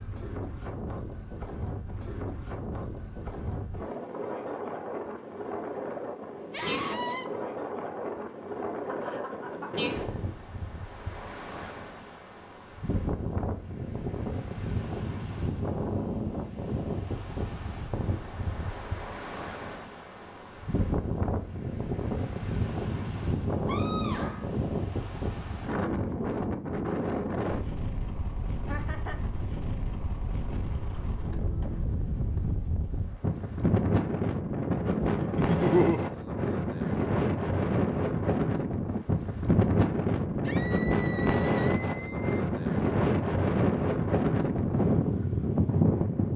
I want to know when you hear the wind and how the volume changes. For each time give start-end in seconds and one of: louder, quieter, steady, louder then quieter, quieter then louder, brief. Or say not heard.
0.0-46.3 louder.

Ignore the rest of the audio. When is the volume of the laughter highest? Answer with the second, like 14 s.
36 s.